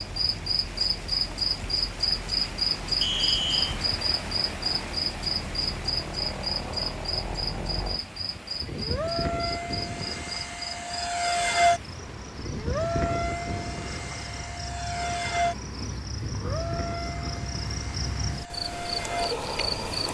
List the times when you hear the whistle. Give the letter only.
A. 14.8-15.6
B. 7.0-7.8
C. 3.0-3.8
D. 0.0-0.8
C.